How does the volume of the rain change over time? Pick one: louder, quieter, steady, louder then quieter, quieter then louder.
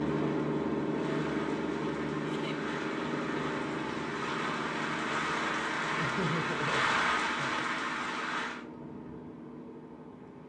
louder.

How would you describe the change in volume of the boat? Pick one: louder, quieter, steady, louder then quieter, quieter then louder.
quieter.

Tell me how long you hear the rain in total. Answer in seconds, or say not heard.
9 s.